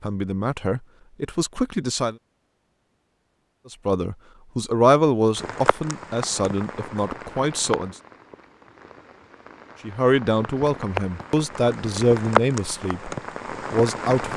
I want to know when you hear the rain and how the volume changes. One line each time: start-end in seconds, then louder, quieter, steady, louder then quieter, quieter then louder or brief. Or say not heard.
5.3-14.3 quieter then louder.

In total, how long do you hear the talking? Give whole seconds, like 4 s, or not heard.
10 s.